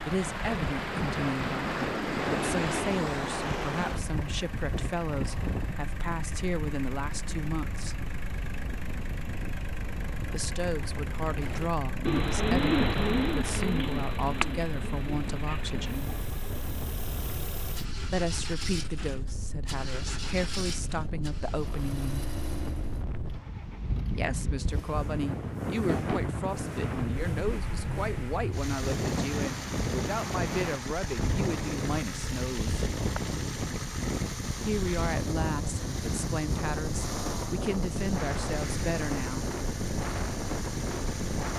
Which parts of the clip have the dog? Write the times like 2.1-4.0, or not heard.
not heard.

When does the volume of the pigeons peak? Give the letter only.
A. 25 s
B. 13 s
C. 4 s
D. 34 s
B.